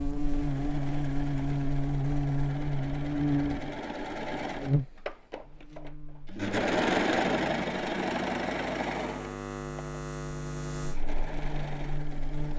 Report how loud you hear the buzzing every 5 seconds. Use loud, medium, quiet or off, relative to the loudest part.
loud, medium, medium.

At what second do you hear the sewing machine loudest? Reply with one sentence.
The volume of the sewing machine peaks at 7 seconds.